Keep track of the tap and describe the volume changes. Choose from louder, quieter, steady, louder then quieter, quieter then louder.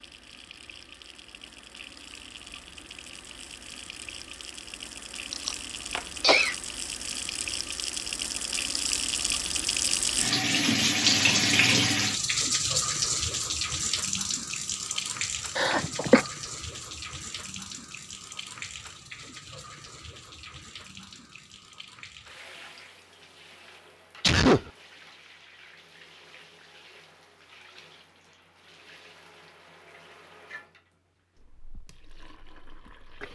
louder then quieter.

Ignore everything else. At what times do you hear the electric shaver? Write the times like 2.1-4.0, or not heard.
not heard.